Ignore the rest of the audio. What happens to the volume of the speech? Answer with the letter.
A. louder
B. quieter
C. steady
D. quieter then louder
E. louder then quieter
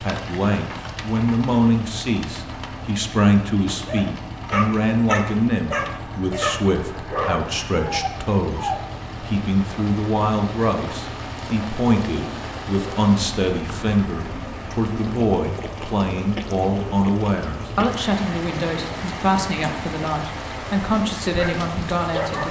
C.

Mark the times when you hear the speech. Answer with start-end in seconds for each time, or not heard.
0.0-22.4.